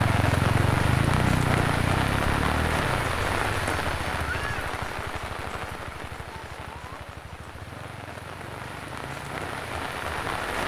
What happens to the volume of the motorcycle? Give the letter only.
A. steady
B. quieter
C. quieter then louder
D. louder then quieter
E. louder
B.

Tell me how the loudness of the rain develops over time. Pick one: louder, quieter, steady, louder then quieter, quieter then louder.
quieter then louder.